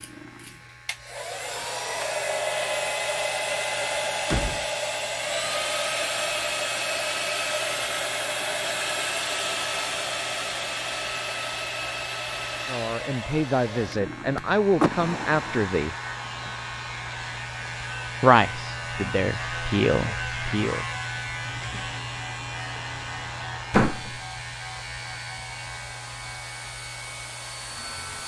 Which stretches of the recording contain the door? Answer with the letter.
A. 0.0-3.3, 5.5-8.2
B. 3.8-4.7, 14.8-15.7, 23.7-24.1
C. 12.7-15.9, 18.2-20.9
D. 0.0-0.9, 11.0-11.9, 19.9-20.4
B.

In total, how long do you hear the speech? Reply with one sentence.
You can hear the speech for 6 seconds altogether.